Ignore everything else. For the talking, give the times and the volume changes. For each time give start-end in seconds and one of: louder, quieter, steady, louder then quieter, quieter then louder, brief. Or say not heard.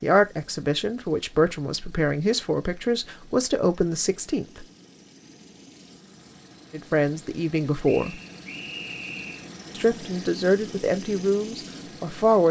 0.0-4.7 steady
6.7-8.2 brief
9.8-12.4 brief.